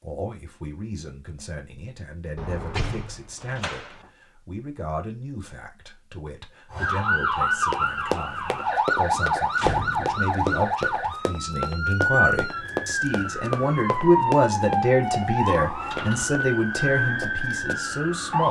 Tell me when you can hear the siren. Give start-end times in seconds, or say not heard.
6.7-18.4.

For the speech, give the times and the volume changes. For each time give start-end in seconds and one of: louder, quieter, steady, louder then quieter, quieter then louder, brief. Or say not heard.
0.0-18.4 louder.